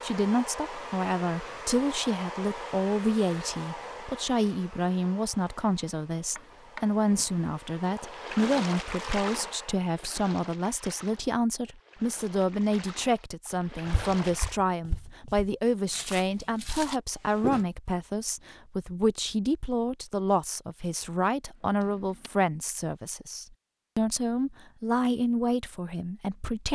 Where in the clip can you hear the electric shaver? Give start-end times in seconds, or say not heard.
not heard.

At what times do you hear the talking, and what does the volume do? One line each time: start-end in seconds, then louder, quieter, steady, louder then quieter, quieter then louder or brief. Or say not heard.
0.0-26.6 steady.